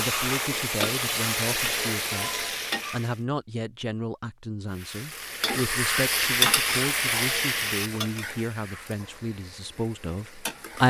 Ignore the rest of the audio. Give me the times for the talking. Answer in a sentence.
The talking can be heard from 0.0 to 10.8 s.